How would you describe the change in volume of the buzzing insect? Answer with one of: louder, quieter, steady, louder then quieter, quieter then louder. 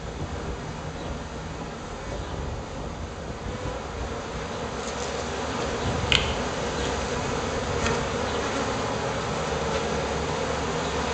louder.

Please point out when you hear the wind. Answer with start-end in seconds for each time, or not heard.
0.0-8.1.